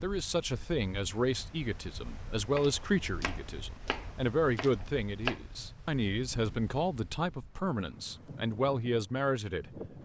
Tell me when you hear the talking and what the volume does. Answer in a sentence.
The talking can be heard from 0.0 to 9.9 s, at a steady volume.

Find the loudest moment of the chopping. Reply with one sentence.
The volume of the chopping peaks at 5 seconds.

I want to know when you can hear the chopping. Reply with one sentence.
The chopping can be heard from 2.5 to 5.4 s.